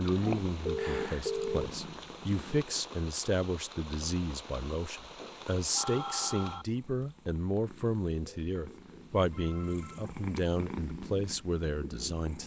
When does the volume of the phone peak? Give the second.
1 s.